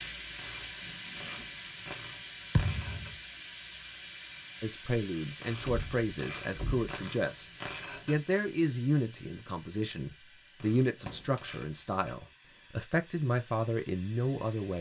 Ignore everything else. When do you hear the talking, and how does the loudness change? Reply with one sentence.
You can hear the talking from 4.6 to 14.7 s, at a steady volume.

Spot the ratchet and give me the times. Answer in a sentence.
The ratchet can be heard from 0.3 to 3.1 s, from 5.4 to 8.2 s and from 10.6 to 12.2 s.